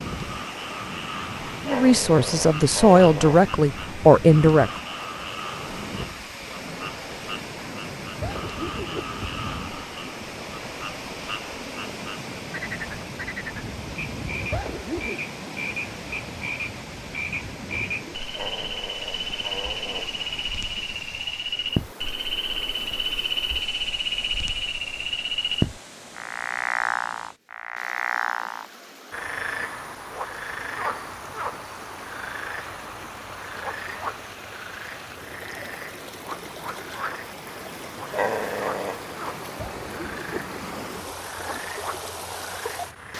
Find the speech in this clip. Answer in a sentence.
You can hear the speech from 1.6 to 4.7 s.